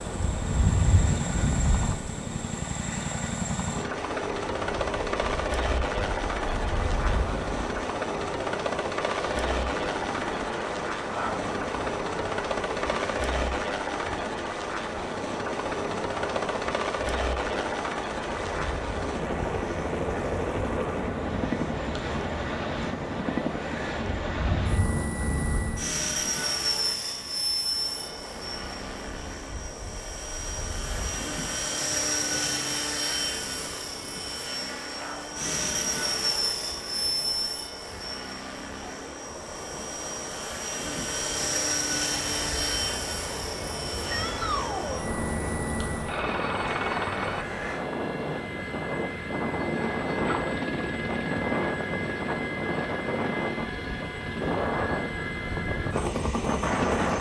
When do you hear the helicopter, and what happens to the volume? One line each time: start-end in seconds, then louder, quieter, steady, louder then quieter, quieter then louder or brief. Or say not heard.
0.0-57.1 steady.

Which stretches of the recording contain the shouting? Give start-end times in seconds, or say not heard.
44.1-45.0.